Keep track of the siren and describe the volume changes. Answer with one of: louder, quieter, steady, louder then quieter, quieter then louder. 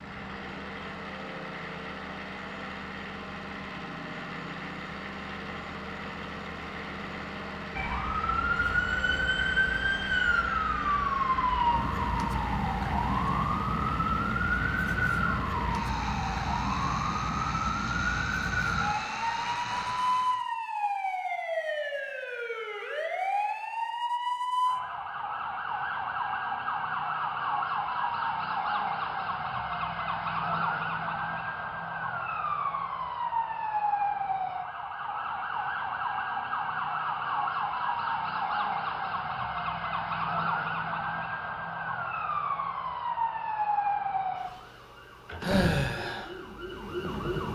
steady.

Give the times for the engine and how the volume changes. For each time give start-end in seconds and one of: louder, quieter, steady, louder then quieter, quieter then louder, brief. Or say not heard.
0.0-20.4 steady.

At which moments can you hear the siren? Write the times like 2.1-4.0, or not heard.
7.8-47.5.